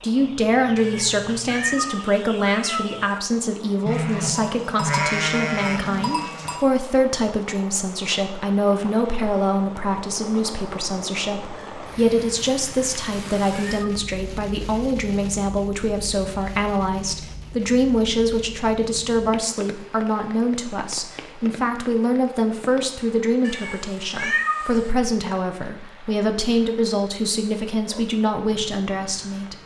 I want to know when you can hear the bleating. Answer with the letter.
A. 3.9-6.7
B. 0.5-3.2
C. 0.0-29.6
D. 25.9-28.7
A.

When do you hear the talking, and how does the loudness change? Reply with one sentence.
The talking can be heard from 0.0 to 29.6 s, at a steady volume.